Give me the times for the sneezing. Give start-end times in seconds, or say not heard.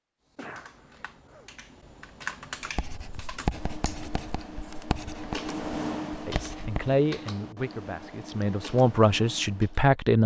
0.3-1.5.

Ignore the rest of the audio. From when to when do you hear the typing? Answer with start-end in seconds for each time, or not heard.
0.3-9.8.